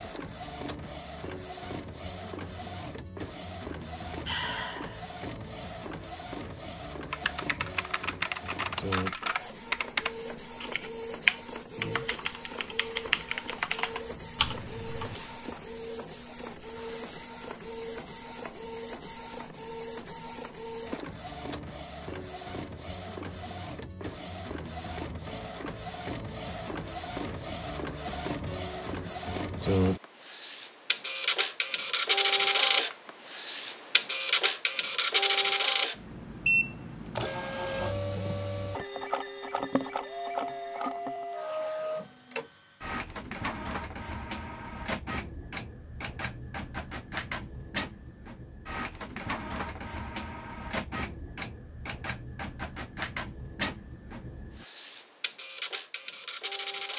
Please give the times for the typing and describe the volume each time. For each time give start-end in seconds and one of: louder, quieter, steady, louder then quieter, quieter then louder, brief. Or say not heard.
7.1-15.2 louder then quieter.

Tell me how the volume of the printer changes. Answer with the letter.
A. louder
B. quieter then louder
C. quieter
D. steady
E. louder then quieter
E.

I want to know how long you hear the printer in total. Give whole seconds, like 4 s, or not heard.
57 s.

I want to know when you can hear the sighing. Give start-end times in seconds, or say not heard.
4.2-5.0.